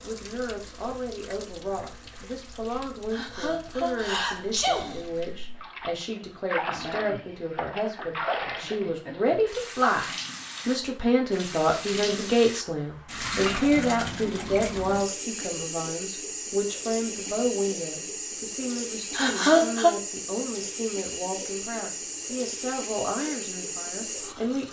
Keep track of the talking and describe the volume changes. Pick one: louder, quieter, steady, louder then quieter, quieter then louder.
louder then quieter.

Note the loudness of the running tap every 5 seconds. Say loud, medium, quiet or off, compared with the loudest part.
quiet, loud, loud, loud, loud.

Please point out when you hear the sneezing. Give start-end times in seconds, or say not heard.
3.1-5.0, 19.1-19.9.